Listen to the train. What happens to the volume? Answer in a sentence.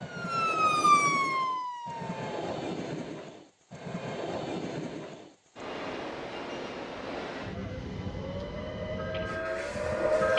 The loudness of the train stays about the same.